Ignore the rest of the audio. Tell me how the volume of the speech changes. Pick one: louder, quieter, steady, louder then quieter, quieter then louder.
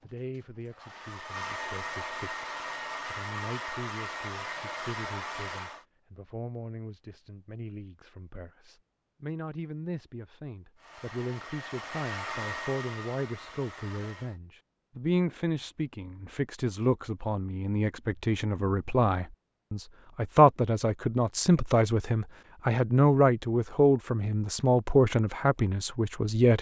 louder.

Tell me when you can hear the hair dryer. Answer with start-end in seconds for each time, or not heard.
0.0-5.8, 10.8-14.4.